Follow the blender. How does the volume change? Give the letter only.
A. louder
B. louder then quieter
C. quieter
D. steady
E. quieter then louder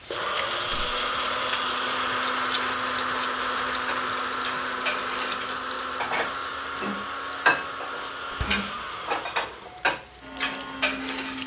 C.